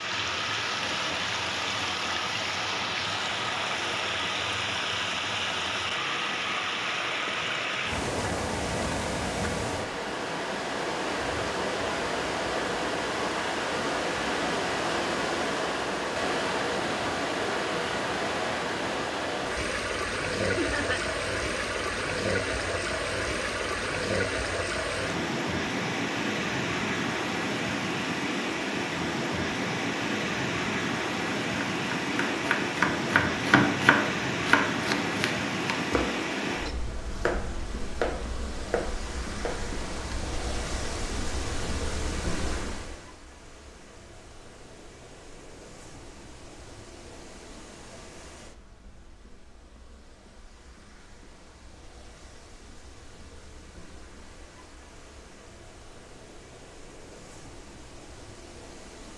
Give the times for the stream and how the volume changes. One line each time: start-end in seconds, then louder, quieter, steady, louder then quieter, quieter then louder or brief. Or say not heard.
0.0-59.1 quieter.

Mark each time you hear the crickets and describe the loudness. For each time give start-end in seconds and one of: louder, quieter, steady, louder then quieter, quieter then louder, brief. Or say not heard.
not heard.